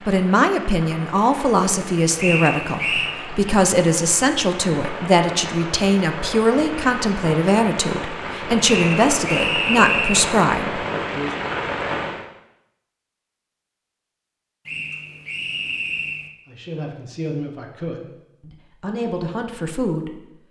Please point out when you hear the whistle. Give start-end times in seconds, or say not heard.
2.1-3.1, 8.6-10.3, 14.7-16.3.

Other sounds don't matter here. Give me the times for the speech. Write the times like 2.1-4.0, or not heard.
0.1-11.3, 16.4-20.4.